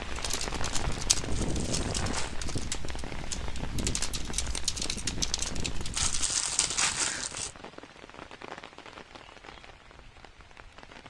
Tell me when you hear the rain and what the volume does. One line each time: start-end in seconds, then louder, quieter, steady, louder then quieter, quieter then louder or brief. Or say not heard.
0.0-11.0 quieter.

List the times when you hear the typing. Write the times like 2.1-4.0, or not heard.
0.1-6.3.